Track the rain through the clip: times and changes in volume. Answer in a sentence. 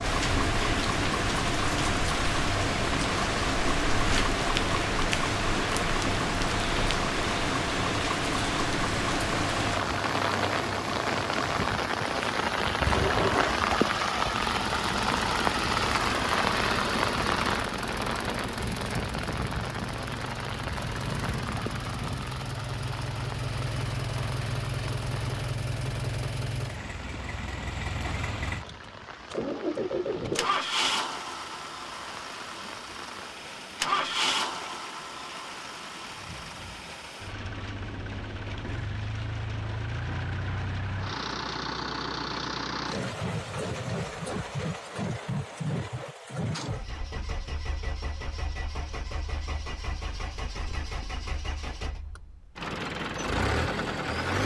You can hear the rain from 0.0 to 46.1 s, getting quieter.